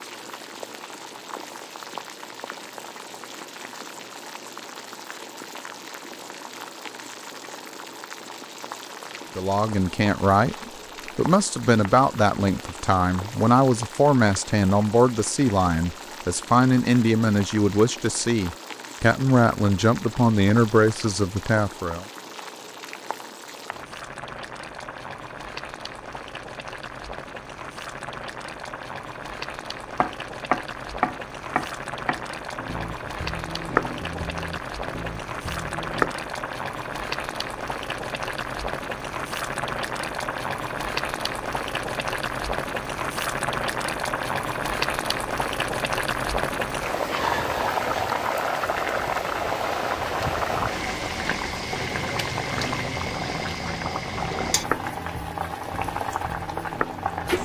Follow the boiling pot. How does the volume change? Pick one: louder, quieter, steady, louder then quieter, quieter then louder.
louder.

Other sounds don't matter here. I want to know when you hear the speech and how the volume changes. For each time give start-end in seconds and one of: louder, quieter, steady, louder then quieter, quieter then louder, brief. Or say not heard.
9.3-22.1 steady.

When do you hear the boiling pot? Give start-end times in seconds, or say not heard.
0.0-57.4.